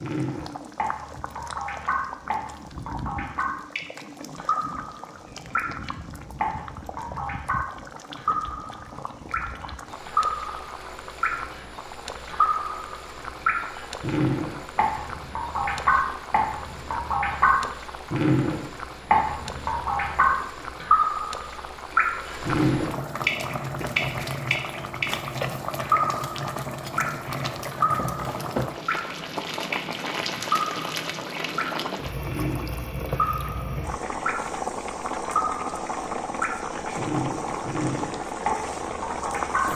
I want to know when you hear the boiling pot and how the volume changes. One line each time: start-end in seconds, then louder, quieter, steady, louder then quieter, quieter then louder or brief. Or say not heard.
0.0-39.7 louder.